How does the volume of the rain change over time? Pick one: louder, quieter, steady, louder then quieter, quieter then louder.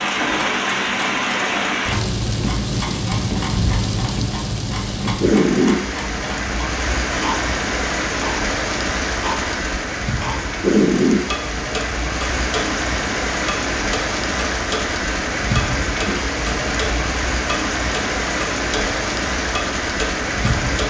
steady.